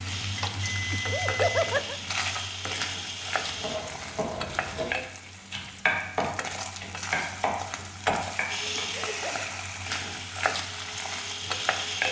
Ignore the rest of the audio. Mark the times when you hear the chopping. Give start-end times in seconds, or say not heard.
3.2-8.8.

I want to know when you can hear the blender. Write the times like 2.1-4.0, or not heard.
0.0-3.8, 8.4-12.0.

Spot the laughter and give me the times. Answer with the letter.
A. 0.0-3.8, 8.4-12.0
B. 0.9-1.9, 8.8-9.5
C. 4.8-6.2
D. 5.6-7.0
B.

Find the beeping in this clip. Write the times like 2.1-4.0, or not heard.
0.4-1.8.